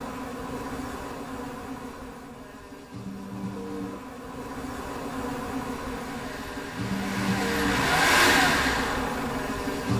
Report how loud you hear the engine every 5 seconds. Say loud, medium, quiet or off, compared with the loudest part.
off, loud.